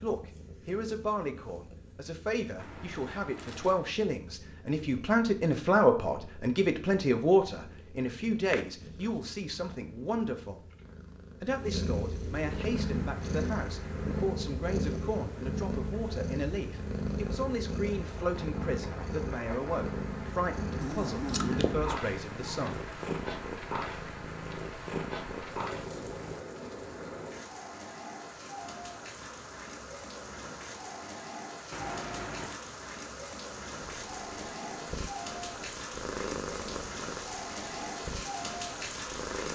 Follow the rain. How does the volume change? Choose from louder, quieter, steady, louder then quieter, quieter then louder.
louder.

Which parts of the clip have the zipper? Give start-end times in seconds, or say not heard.
2.5-3.9, 20.8-22.1, 31.7-32.6.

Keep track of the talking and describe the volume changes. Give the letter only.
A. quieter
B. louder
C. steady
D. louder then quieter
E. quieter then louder
D.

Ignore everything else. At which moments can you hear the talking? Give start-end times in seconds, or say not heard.
0.0-10.6, 11.4-22.9.